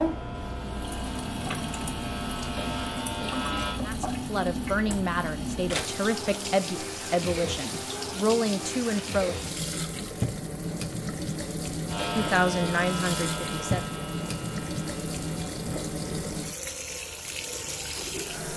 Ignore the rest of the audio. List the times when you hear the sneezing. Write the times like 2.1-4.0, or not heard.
not heard.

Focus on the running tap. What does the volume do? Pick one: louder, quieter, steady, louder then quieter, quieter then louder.
steady.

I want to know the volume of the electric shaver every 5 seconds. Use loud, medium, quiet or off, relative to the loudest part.
loud, off, loud, quiet.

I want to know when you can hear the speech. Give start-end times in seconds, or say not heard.
3.9-9.3, 12.2-13.8.